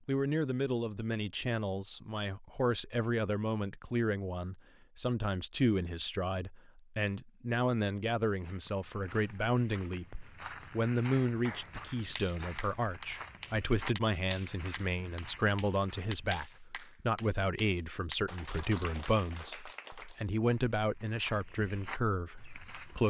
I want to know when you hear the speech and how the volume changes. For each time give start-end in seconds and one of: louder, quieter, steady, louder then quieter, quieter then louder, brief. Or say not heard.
0.1-23.0 steady.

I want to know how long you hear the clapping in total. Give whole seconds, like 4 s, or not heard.
9 s.